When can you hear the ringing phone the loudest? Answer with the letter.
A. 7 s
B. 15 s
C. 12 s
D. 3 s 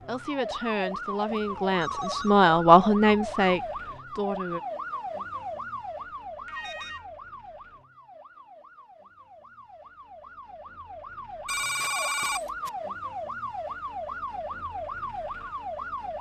C.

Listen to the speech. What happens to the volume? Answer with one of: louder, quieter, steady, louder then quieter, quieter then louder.
louder then quieter.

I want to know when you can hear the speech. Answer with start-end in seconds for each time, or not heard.
0.0-4.6.